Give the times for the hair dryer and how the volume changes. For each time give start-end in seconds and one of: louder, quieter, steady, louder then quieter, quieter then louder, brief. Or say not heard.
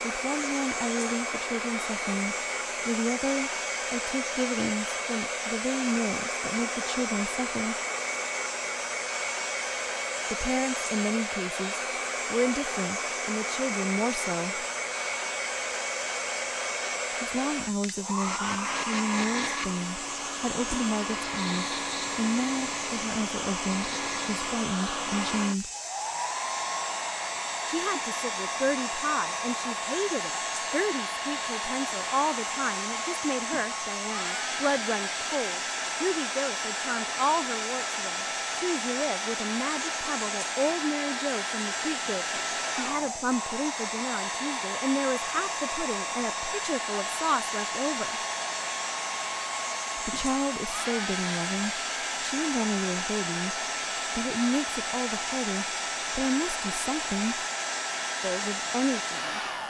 0.0-59.6 steady.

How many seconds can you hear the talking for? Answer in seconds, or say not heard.
50 s.